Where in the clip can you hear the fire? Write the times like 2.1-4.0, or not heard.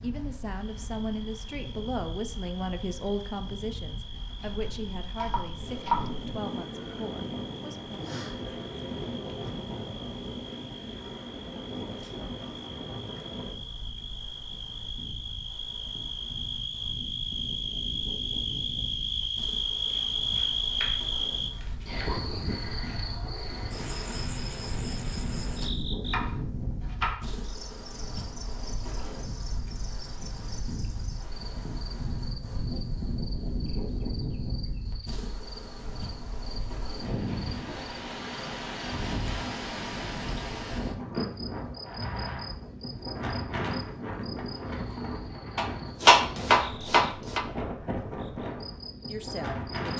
not heard.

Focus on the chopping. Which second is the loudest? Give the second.
46 s.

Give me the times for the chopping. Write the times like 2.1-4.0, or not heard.
4.3-6.3, 19.9-20.9, 21.6-22.1, 26.1-27.2, 45.5-47.5.